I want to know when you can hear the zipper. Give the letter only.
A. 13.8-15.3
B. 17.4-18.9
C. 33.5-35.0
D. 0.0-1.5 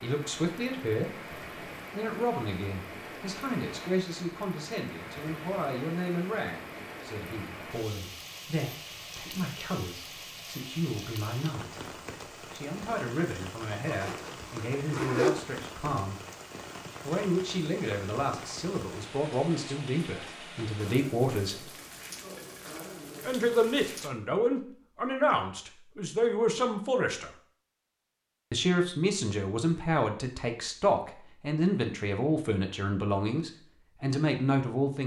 A.